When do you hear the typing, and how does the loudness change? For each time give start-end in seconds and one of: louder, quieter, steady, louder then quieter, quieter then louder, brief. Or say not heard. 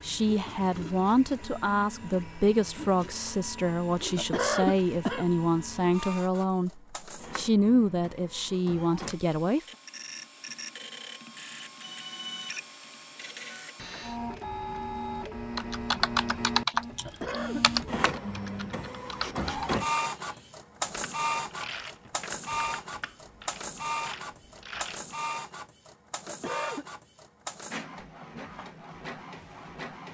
15.6-25.1 quieter.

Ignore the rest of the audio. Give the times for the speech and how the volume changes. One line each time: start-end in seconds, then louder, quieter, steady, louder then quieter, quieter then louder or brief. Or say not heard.
0.0-9.6 steady.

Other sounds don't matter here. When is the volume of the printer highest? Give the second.
20 s.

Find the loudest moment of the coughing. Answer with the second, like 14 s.
5 s.